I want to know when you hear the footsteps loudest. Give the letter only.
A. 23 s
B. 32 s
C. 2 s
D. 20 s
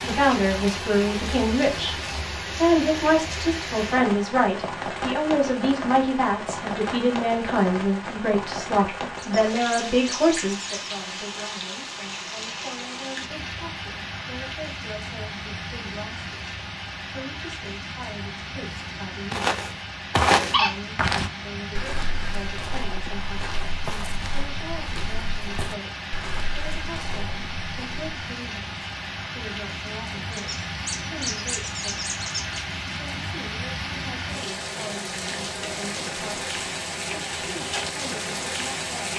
D.